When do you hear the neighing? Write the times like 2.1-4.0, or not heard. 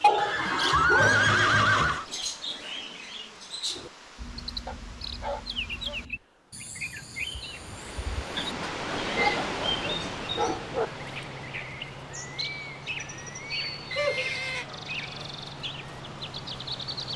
0.1-2.0, 8.3-9.4, 13.9-14.7.